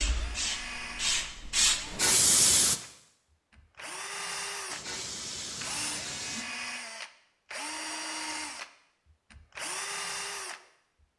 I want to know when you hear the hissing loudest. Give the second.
2 s.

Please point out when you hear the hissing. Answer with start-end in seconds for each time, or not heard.
0.0-2.8, 4.7-6.5.